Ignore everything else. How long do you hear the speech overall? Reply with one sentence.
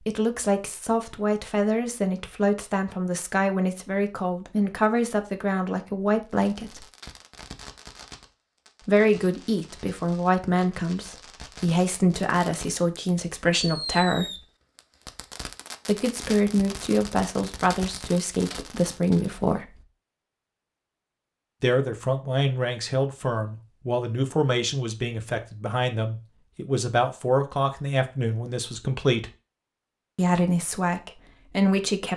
The speech can be heard for 26 seconds in total.